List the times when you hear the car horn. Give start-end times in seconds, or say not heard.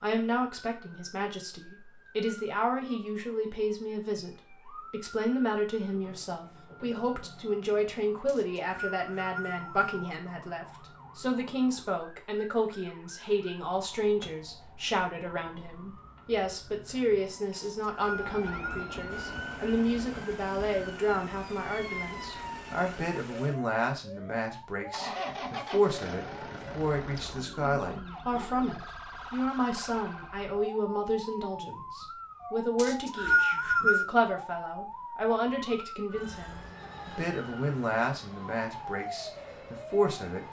not heard.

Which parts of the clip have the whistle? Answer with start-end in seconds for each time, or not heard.
8.2-9.9, 17.6-19.0, 32.8-34.0.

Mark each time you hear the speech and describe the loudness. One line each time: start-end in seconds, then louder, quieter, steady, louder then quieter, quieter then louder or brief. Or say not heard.
0.0-40.4 steady.